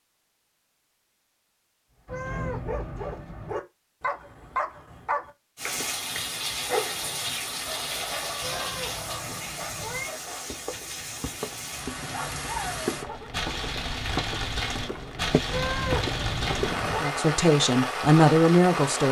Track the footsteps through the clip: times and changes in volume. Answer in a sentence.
You can hear the footsteps from 10.4 to 17.1 s, getting louder.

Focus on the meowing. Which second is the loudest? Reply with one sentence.
The loudest moment of the meowing is at 16 seconds.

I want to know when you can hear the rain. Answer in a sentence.
You can hear the rain from 5.5 to 19.0 s.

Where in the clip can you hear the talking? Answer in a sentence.
You can hear the talking from 17.0 to 19.0 s.